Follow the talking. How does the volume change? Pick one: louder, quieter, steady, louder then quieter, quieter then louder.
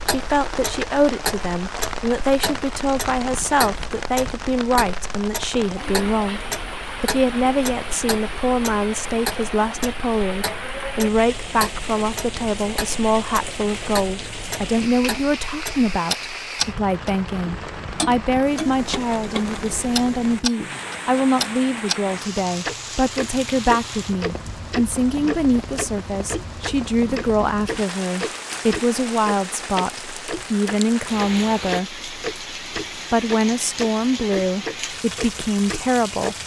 steady.